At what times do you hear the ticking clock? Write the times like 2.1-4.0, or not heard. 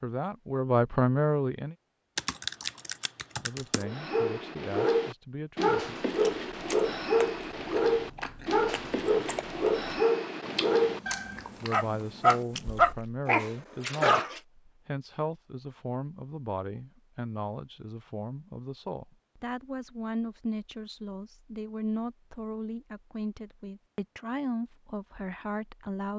not heard.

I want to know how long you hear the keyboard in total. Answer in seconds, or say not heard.
2 s.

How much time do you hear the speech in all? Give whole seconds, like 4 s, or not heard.
19 s.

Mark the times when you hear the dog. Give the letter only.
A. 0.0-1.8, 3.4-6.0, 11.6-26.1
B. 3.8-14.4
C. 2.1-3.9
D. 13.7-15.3
B.